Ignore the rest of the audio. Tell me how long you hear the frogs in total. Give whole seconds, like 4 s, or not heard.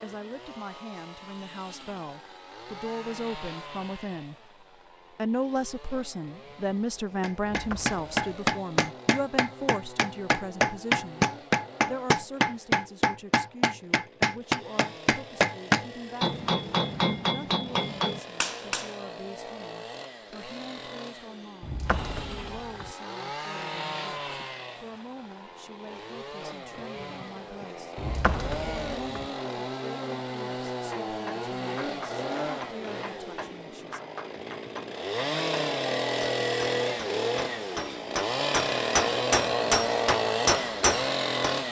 not heard.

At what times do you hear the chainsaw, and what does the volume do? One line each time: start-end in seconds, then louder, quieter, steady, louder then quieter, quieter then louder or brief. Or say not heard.
0.0-41.6 louder.